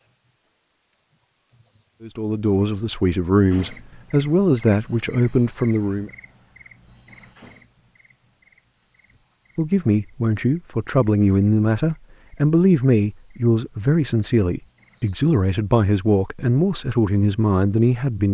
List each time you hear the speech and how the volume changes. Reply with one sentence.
You can hear the speech from 2.0 to 6.1 s, at a steady volume; and from 9.6 to 18.2 s, at a steady volume.